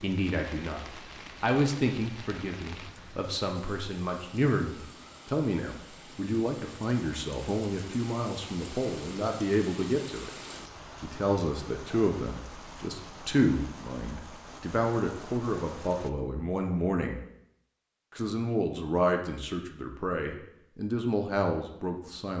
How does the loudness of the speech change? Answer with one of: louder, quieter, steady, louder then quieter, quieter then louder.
steady.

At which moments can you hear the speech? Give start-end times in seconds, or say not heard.
0.0-10.3, 11.0-17.1, 18.1-22.3.